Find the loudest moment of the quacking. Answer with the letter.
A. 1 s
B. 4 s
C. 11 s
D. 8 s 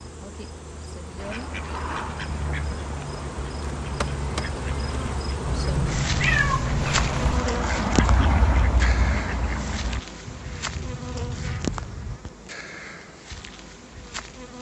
D.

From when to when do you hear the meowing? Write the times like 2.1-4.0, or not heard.
5.5-7.5.